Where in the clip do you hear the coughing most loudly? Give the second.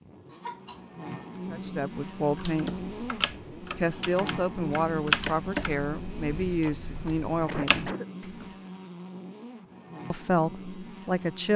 8 s.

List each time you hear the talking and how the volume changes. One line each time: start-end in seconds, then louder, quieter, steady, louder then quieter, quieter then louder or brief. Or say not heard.
1.5-2.8 brief
3.8-7.9 steady
10.1-11.5 brief.